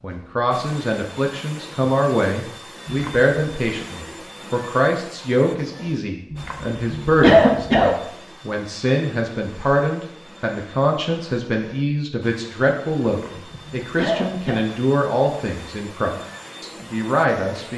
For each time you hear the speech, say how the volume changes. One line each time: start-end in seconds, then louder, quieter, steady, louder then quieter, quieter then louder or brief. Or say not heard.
0.0-17.7 steady.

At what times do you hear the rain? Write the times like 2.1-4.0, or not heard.
not heard.